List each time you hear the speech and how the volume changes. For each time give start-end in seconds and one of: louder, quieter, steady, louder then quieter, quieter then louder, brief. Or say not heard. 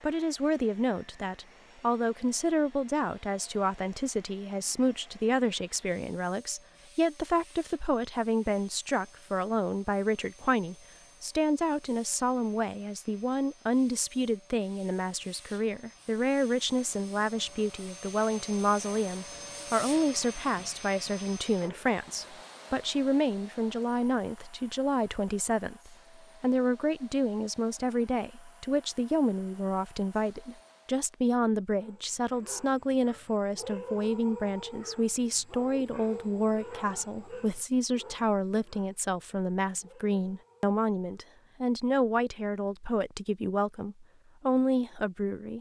0.0-45.5 steady.